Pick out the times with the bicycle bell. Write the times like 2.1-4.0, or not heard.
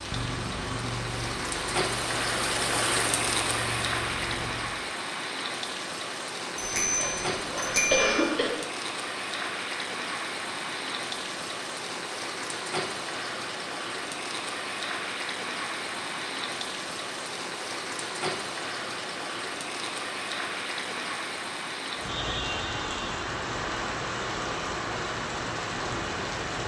6.5-8.2.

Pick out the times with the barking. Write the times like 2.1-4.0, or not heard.
not heard.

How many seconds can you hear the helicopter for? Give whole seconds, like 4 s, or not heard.
5 s.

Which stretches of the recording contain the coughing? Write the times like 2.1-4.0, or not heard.
7.0-8.5.